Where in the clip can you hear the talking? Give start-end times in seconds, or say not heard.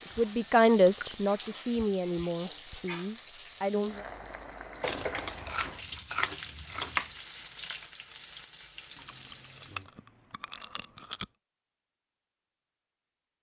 0.1-4.0.